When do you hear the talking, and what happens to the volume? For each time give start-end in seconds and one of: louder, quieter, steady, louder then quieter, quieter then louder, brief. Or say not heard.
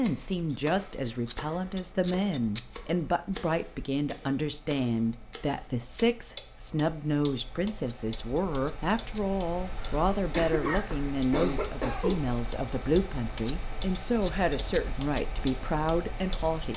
0.0-16.7 steady.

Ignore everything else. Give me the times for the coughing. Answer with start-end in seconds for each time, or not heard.
9.8-12.3.